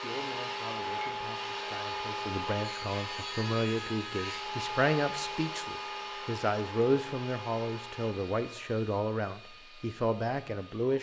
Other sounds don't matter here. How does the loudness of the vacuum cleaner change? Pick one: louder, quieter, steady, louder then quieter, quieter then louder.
quieter.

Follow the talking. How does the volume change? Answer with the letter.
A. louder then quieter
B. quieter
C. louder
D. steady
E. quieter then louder
C.